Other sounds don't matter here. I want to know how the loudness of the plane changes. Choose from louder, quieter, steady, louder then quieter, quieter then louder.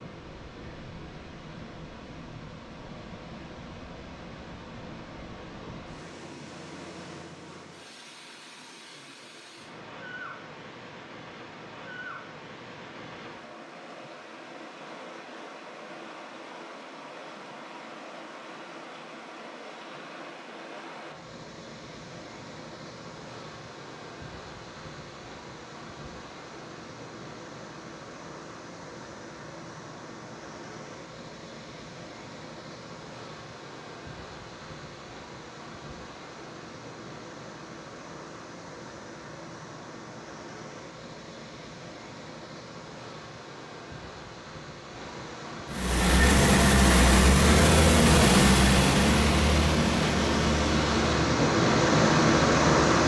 quieter.